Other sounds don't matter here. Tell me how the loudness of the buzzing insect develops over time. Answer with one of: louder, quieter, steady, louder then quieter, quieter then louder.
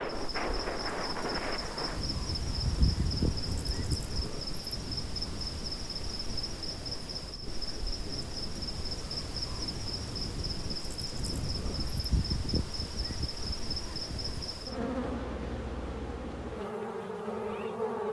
steady.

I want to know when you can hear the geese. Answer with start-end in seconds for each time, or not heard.
2.5-4.3, 11.8-14.7.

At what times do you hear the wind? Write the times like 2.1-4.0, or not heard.
0.0-12.0.